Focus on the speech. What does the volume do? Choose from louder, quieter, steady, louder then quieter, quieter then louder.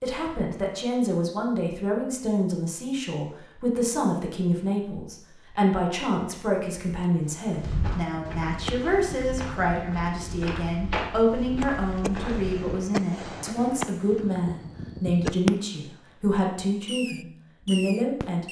steady.